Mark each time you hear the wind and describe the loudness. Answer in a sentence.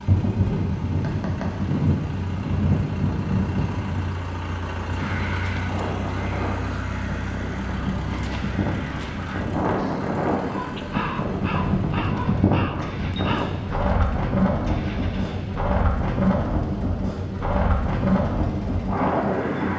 You can hear the wind from 0.0 to 19.7 s, getting quieter then louder.